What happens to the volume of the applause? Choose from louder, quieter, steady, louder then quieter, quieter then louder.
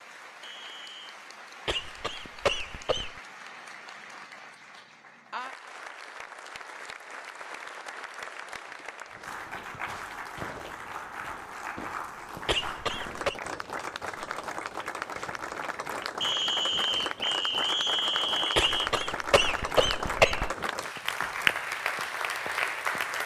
louder.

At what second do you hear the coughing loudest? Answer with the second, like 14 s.
20 s.